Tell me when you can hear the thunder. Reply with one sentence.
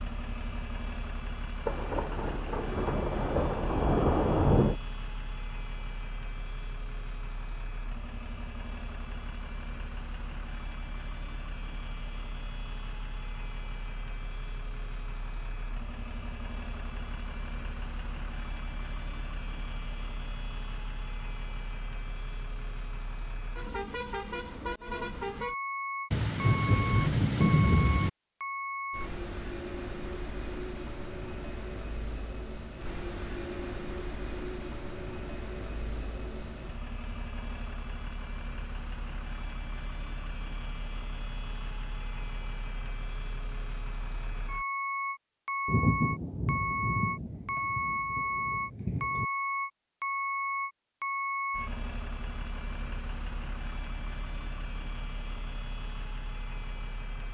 You can hear the thunder from 1.6 to 4.8 s, from 26.1 to 28.1 s and from 45.6 to 49.2 s.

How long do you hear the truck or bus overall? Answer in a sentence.
You can hear the truck or bus for 57 seconds altogether.